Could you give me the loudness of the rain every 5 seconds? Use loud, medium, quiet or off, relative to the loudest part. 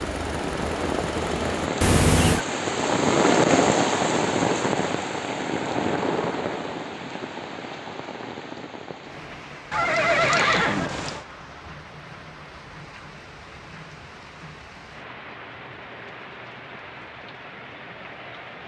loud, medium, quiet, quiet.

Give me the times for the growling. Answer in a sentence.
The growling can't be heard in this clip.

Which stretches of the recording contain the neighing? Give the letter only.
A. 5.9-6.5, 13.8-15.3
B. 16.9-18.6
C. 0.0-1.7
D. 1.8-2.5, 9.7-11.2
D.